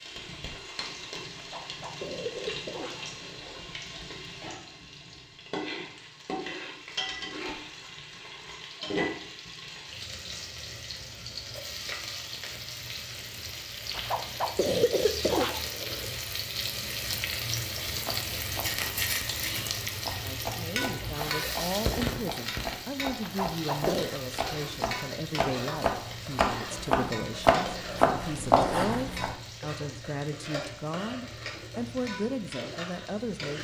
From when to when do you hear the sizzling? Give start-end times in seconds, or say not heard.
0.0-33.5.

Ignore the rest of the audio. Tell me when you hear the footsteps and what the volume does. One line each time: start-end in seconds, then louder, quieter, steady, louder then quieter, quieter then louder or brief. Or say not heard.
not heard.